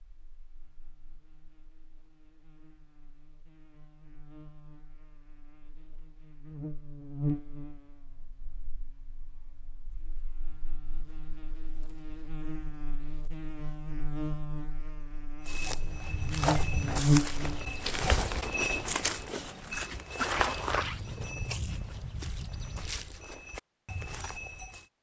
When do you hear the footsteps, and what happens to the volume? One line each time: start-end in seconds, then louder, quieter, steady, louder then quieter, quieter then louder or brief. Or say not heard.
15.4-24.9 quieter.